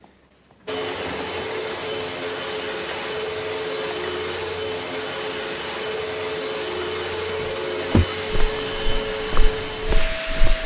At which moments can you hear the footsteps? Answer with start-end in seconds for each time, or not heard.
7.3-10.6.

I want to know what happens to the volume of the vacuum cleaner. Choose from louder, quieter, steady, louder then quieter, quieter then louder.
steady.